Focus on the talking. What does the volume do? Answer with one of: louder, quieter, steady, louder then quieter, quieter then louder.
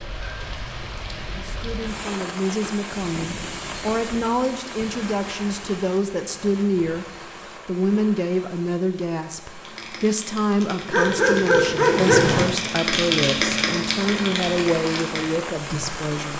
steady.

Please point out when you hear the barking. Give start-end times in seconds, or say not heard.
10.9-12.4.